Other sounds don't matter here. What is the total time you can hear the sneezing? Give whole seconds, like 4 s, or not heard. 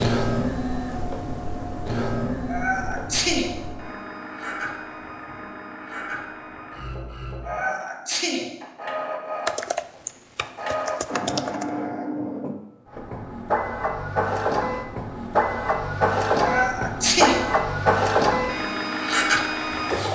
3 s.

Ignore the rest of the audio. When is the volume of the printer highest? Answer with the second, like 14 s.
18 s.